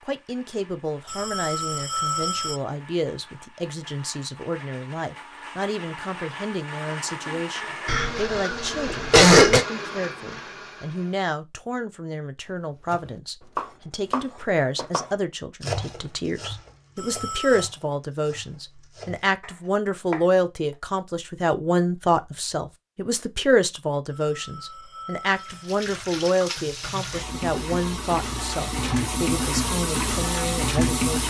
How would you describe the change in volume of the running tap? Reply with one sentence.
The loudness of the running tap goes up.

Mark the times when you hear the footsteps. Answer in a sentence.
You can't hear the footsteps here.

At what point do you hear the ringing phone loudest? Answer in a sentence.
The loudest moment of the ringing phone is at 2 seconds.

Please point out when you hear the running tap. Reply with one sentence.
You can hear the running tap from 25.2 to 31.2 s.